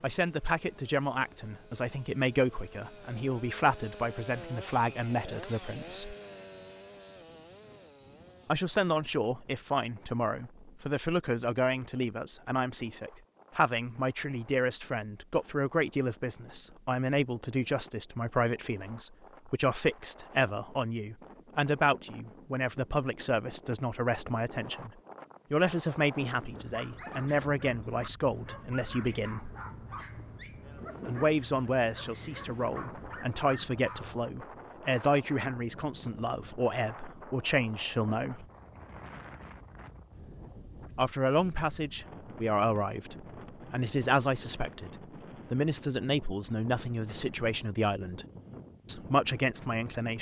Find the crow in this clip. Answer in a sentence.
You can't hear the crow here.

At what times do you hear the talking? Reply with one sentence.
You can hear the talking from 0.0 to 6.2 s, from 8.4 to 24.9 s, from 25.5 to 29.5 s, from 31.1 to 38.5 s, from 41.0 to 48.2 s and from 48.9 to 50.1 s.